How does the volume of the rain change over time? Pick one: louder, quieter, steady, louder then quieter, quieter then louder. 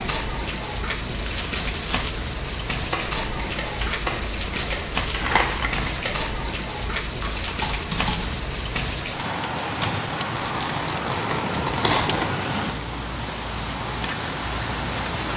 steady.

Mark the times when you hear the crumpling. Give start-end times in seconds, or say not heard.
1.1-2.1, 5.1-5.9, 10.3-12.3.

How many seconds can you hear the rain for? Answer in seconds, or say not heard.
15 s.